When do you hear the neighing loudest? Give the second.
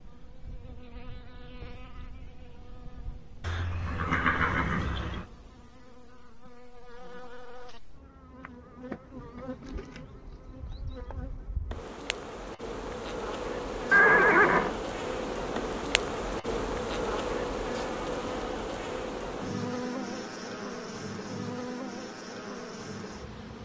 14 s.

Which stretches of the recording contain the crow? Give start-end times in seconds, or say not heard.
not heard.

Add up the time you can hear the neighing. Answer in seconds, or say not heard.
3 s.